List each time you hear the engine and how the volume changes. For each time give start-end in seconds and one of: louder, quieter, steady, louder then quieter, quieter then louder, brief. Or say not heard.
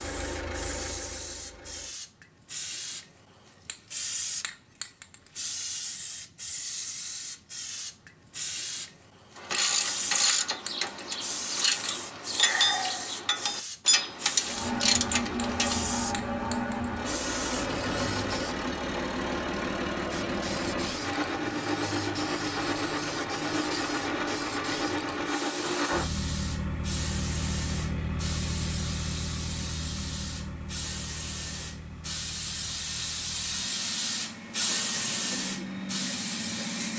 0.0-1.9 brief
14.4-36.9 quieter.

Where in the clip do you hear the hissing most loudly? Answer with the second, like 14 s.
35 s.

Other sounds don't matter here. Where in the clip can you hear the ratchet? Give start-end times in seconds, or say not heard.
9.3-15.8.